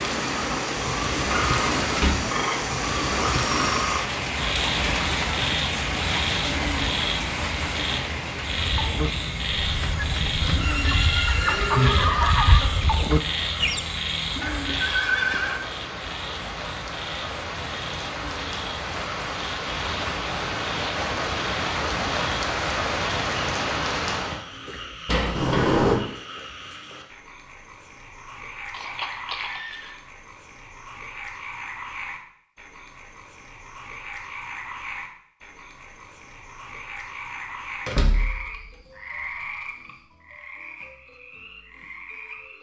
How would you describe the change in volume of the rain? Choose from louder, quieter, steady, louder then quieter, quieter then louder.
quieter then louder.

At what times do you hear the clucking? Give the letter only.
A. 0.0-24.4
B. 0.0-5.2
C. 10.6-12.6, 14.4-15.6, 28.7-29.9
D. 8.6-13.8
D.